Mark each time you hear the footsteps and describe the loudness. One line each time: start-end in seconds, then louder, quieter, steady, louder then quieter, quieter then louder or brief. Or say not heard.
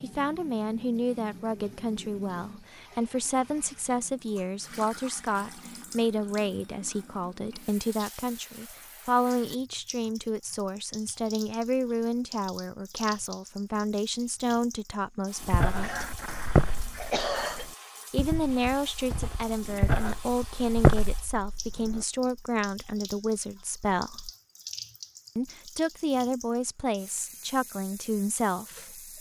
15.4-22.1 quieter then louder.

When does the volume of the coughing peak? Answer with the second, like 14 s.
17 s.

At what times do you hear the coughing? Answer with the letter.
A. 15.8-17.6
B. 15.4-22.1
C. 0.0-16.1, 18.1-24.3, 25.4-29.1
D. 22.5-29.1
A.